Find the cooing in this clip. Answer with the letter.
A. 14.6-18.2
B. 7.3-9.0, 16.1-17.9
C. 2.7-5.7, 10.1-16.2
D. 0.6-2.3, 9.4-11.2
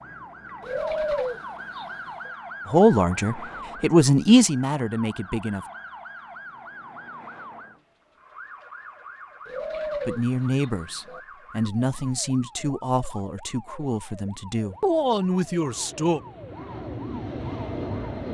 D.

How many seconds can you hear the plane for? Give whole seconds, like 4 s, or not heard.
4 s.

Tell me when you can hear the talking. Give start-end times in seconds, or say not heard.
2.7-5.7, 10.1-16.2.